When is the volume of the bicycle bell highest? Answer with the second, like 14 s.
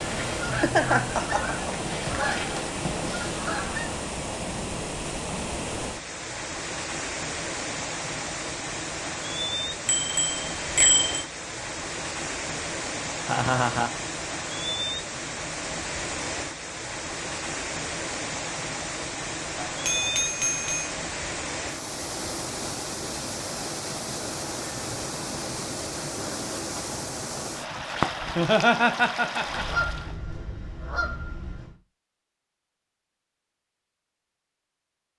11 s.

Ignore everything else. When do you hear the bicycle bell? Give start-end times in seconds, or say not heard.
9.8-11.2, 19.7-20.9.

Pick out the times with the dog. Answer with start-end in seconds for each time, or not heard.
not heard.